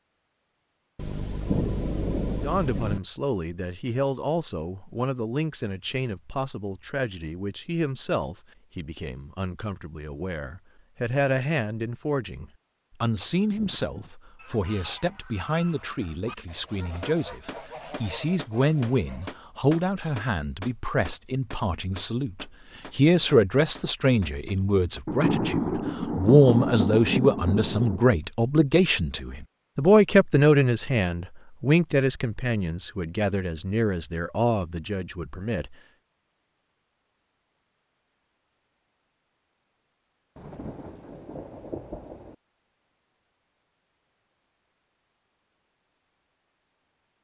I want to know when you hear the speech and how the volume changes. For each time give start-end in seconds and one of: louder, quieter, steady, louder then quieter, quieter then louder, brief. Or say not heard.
2.4-35.8 louder.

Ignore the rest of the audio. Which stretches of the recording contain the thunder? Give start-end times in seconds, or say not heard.
0.9-3.0, 25.1-28.1, 40.4-42.4.